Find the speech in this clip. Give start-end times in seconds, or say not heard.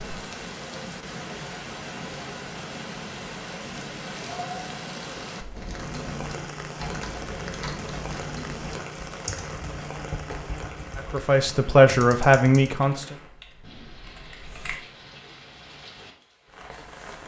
10.9-13.2.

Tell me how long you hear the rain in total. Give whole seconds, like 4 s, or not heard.
17 s.